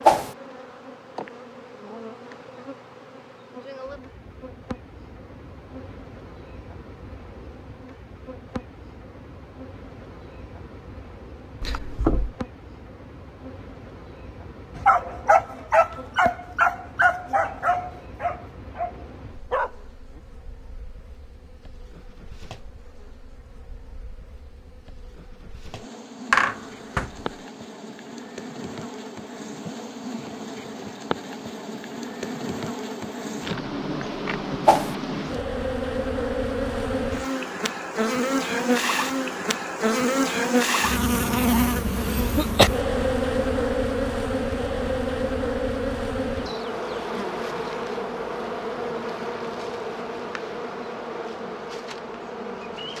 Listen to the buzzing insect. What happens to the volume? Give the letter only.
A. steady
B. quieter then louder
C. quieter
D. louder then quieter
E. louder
E.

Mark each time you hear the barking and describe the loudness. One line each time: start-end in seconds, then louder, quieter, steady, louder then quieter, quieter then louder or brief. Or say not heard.
14.8-20.2 quieter.